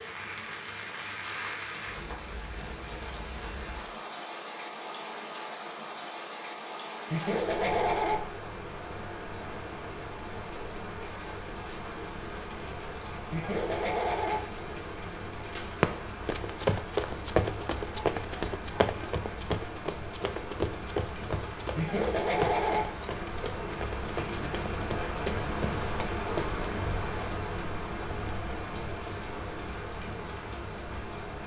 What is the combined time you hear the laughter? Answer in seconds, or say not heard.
3 s.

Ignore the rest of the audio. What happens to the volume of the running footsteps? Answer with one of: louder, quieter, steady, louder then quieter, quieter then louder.
quieter.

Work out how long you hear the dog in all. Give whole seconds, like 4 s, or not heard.
not heard.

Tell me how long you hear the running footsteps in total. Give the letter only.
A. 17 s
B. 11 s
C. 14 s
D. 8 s
B.